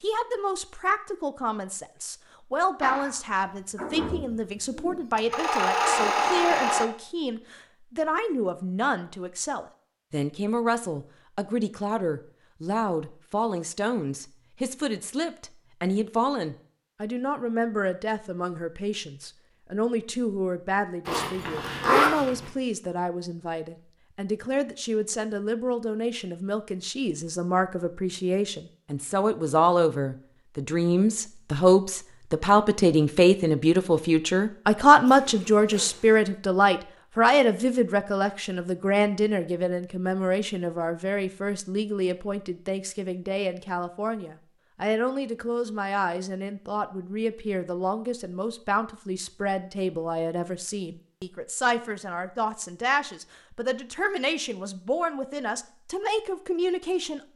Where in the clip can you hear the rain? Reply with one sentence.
You can't hear the rain here.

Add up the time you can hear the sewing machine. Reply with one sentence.
The sewing machine can be heard for 4 seconds in total.